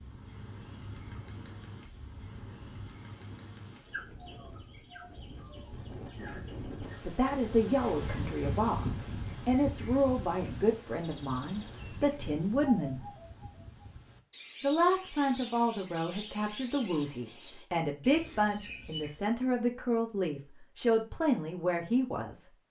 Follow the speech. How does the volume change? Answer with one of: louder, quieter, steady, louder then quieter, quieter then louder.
steady.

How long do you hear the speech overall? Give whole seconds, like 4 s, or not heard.
14 s.